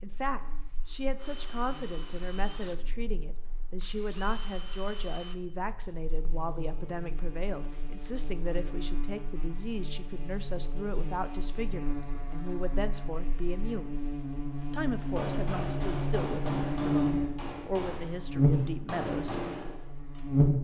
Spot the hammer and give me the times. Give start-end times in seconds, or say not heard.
15.0-20.2.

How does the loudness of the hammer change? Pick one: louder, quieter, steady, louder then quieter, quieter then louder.
quieter then louder.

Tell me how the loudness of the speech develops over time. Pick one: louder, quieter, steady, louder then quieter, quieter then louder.
steady.